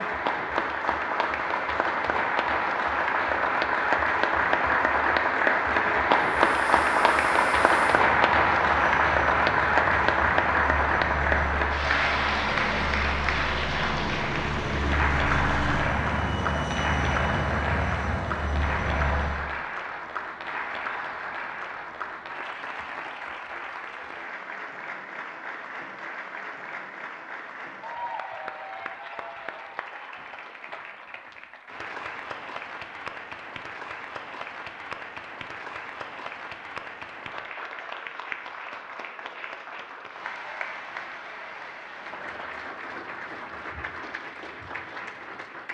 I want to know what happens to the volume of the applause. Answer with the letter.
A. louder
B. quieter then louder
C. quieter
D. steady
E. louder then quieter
C.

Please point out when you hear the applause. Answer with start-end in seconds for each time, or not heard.
0.0-45.6.